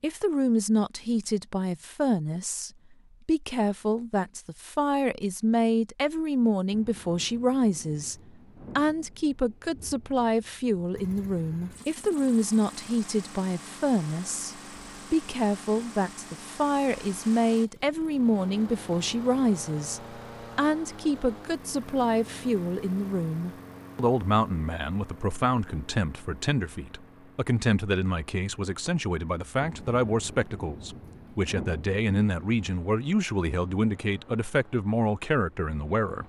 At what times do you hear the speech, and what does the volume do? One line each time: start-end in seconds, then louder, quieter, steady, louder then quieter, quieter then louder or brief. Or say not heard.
0.0-36.2 steady.